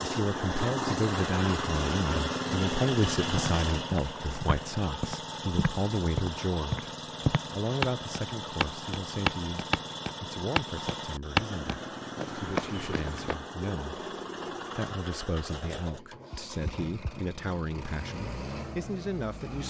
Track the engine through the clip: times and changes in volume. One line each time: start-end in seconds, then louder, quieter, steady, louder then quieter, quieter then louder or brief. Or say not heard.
0.0-19.6 quieter.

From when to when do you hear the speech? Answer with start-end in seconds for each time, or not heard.
0.0-6.9, 7.5-14.0, 14.8-19.6.